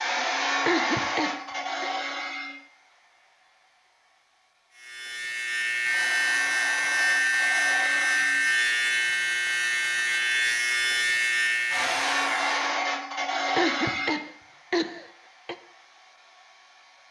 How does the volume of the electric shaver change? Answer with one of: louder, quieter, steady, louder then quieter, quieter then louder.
steady.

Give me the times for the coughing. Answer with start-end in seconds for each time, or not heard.
0.7-1.9, 13.6-15.6.